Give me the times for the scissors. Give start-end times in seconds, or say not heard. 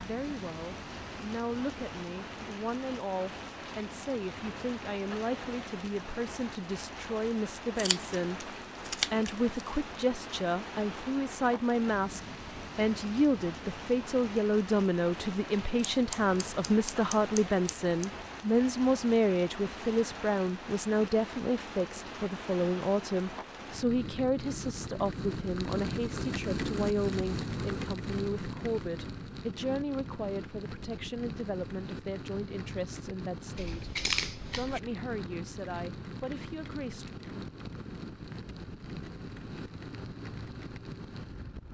7.8-9.7, 15.9-18.1, 33.5-34.8.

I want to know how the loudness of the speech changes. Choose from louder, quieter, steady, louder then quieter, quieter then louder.
louder then quieter.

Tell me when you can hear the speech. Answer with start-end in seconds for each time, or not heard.
0.0-37.1.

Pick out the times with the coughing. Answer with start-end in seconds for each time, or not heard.
not heard.